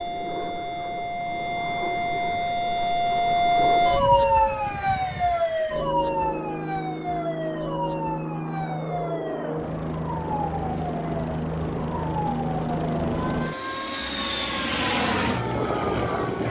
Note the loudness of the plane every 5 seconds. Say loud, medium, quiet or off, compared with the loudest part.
medium, medium, loud, loud.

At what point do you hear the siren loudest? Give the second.
4 s.